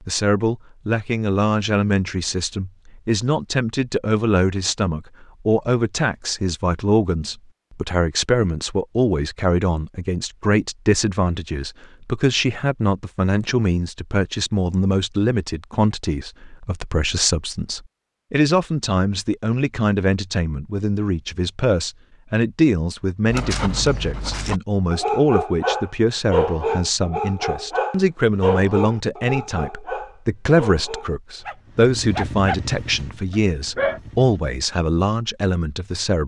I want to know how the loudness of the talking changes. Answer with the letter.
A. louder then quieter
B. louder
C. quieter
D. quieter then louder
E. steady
E.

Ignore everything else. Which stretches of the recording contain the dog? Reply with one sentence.
You can hear the dog from 23.2 to 34.0 s.